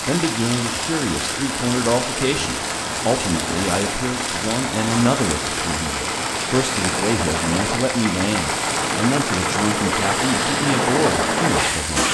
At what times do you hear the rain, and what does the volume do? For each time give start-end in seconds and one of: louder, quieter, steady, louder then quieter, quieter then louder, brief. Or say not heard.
0.0-12.0 steady.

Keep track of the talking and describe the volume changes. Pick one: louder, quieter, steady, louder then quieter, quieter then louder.
steady.